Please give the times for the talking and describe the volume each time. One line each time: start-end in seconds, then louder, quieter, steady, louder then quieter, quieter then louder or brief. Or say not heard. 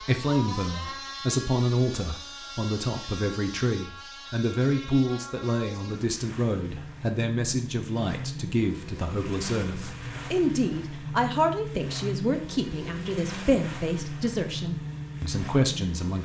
0.0-16.2 steady.